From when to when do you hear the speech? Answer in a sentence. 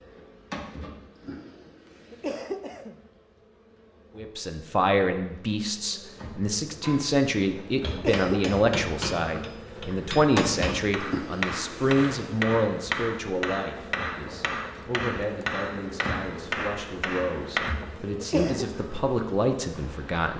You can hear the speech from 4.2 to 20.3 s.